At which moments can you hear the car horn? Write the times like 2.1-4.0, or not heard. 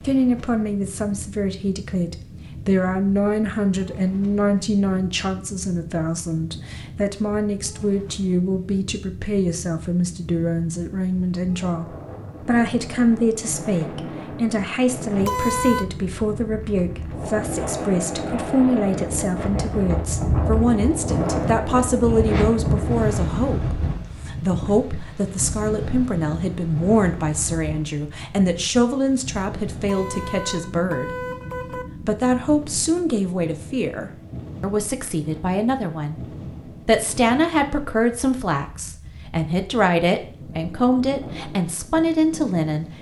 15.2-15.8, 29.8-31.9.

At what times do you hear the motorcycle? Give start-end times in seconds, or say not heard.
not heard.